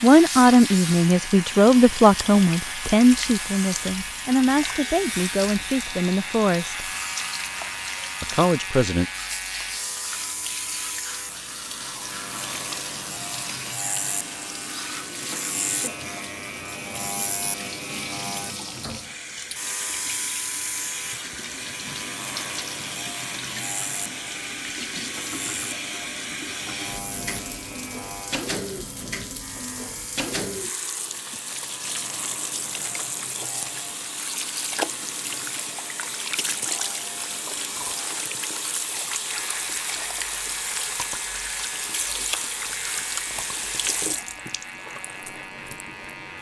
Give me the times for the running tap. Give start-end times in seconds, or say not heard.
0.0-46.3.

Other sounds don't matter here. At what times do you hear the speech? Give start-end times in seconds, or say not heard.
0.0-6.9, 8.2-9.1.